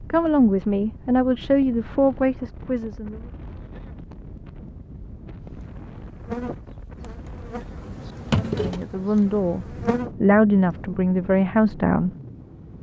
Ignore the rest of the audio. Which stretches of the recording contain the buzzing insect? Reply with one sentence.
You can hear the buzzing insect from 5.4 to 10.1 s.